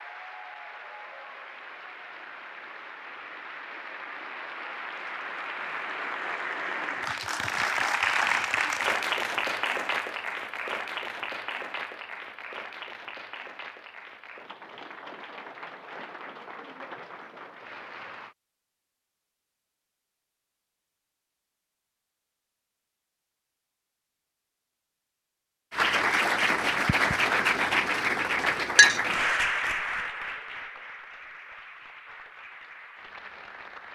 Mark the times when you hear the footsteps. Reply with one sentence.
You can't hear the footsteps here.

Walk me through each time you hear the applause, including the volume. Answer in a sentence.
The applause can be heard from 0.0 to 18.4 s, getting louder then quieter; and from 25.7 to 33.9 s, getting quieter.